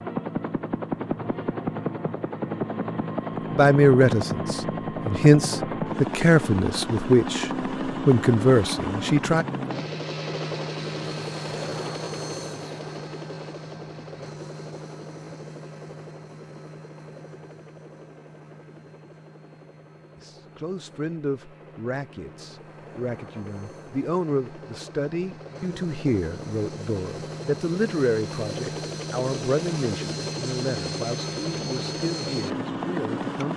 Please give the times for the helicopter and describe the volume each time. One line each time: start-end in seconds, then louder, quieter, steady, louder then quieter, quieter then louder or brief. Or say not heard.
0.0-33.5 quieter then louder.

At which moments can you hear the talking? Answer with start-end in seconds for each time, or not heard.
3.5-9.4, 20.1-33.5.